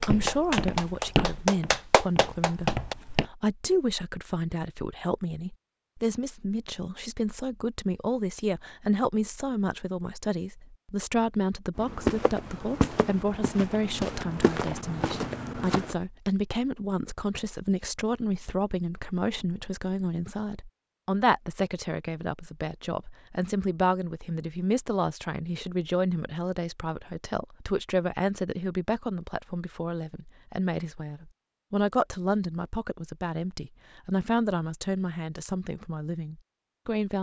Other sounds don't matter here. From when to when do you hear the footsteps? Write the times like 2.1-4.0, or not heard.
0.0-3.2, 11.8-15.9.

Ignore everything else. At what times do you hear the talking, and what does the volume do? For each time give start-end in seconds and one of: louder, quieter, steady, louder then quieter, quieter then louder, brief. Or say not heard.
0.0-37.1 steady.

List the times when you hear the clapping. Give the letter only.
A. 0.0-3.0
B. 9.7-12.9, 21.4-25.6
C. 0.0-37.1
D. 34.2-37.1
A.